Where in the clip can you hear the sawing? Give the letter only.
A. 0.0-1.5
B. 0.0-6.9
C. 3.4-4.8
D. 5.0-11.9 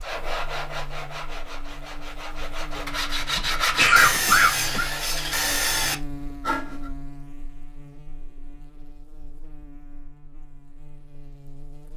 B.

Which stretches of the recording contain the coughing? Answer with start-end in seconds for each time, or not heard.
3.4-4.8.